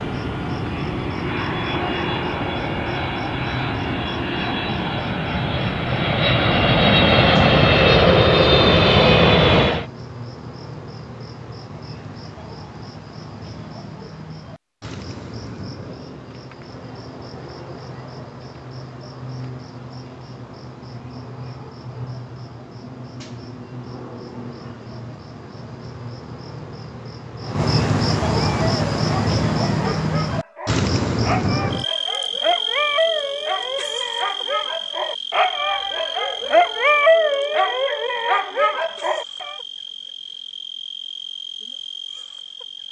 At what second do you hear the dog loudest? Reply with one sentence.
The volume of the dog peaks at 37 seconds.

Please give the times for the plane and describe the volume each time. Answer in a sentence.
The plane can be heard from 0.0 to 9.8 s, getting louder.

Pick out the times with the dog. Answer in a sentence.
The dog can be heard from 28.5 to 39.5 s.